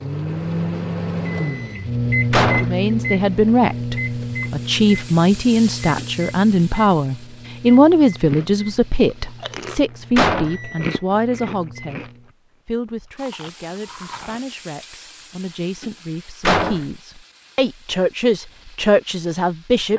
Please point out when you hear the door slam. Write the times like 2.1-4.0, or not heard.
2.3-2.9, 10.2-10.6, 16.4-16.9.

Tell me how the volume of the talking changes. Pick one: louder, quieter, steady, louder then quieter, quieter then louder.
quieter then louder.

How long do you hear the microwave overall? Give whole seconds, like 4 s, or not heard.
12 s.